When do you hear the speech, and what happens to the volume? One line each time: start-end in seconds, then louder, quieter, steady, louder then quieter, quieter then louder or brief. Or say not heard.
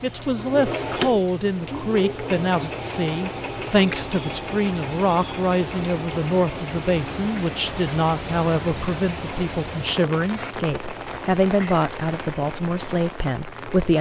0.0-13.9 steady.